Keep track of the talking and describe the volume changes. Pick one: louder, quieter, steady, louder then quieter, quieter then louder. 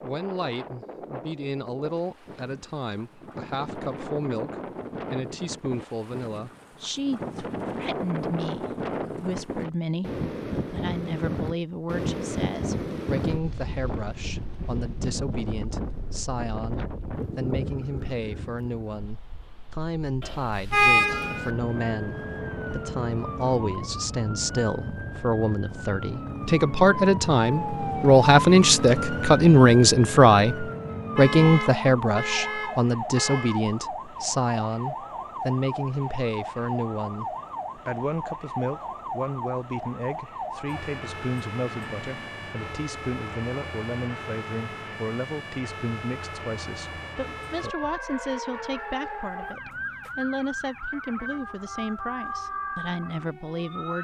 louder then quieter.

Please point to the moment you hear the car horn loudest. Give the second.
21 s.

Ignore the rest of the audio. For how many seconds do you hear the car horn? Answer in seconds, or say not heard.
4 s.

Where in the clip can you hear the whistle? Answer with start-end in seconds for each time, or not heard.
not heard.